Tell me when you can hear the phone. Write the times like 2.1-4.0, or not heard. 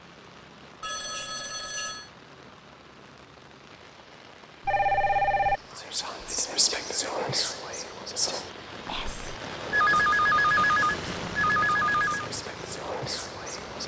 0.8-2.1, 4.7-5.6, 9.7-12.3.